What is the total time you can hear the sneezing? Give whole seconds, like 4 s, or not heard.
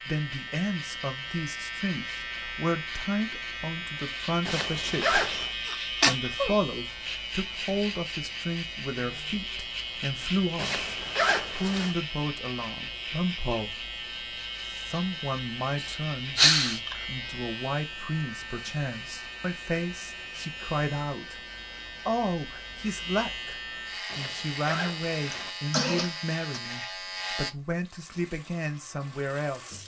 4 s.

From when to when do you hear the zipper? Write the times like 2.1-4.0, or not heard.
4.5-5.5, 10.6-11.9, 24.1-25.5.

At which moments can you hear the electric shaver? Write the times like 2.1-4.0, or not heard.
0.0-27.6.